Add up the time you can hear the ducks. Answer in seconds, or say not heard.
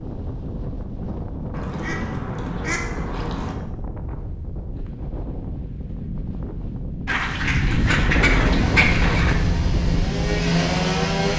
4 s.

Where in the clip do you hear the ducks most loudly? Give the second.
9 s.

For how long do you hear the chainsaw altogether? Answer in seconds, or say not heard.
3 s.